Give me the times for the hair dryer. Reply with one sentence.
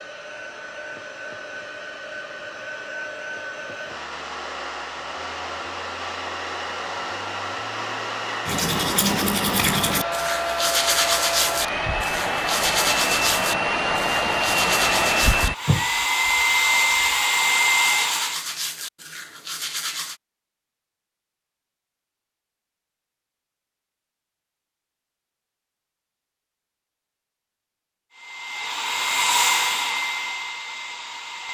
You can hear the hair dryer from 0.0 to 18.4 s and from 28.1 to 31.4 s.